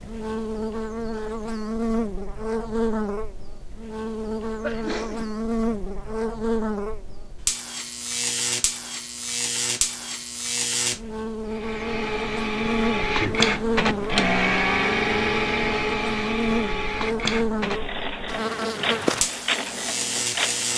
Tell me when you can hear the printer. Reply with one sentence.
You can hear the printer from 11.5 to 20.7 s.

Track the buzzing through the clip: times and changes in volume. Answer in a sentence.
The buzzing can be heard from 0.0 to 20.7 s, at a steady volume.